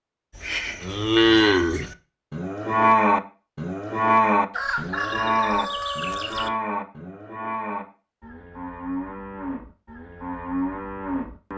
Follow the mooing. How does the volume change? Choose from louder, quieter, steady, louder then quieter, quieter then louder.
quieter.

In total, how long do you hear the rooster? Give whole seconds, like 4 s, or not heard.
2 s.